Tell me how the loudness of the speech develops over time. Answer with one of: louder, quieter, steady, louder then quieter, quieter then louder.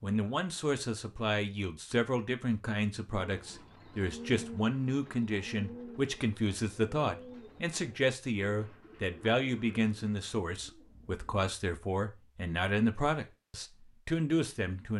steady.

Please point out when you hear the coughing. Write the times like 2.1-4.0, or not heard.
not heard.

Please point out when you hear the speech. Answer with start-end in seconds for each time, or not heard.
0.0-14.9.